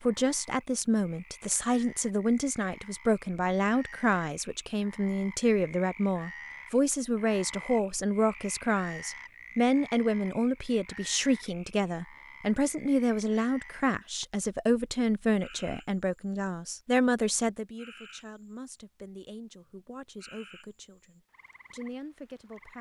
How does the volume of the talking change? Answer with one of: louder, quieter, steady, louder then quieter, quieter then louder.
quieter.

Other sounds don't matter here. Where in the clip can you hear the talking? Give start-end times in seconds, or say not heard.
0.0-22.7.